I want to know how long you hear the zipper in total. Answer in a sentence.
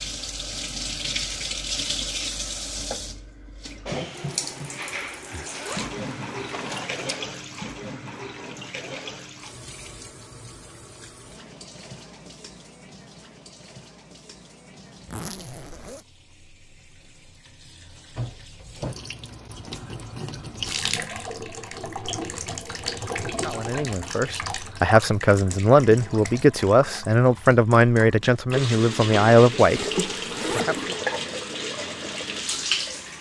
You can hear the zipper for 4 seconds altogether.